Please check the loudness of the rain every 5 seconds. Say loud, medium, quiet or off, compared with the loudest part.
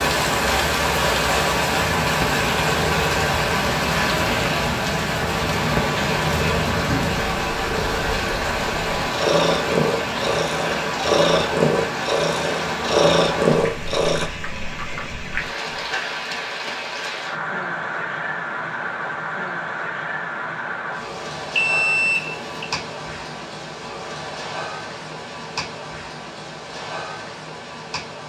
loud, loud, medium, medium, medium, quiet.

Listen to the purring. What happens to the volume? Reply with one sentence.
The loudness of the purring goes up.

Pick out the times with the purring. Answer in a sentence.
The purring can be heard from 1.8 to 14.3 s.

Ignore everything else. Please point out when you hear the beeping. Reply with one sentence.
You can hear the beeping from 21.6 to 22.6 s.